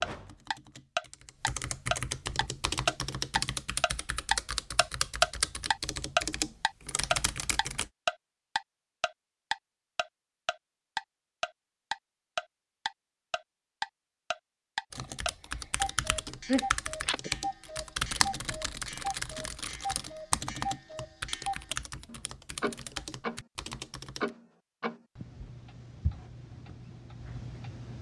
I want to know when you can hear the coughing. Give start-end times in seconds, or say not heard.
16.4-17.3.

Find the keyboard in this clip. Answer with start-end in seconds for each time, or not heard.
0.0-7.9, 14.9-24.3.